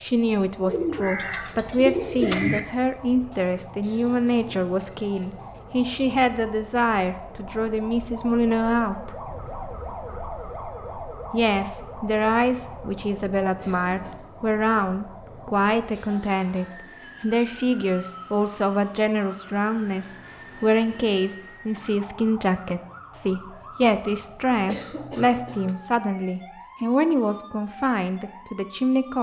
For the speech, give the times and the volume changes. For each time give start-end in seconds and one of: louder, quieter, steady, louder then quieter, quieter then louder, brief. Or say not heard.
0.0-9.1 steady
11.3-29.1 steady.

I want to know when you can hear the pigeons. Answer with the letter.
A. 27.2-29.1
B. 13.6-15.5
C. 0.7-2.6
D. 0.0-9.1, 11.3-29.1
C.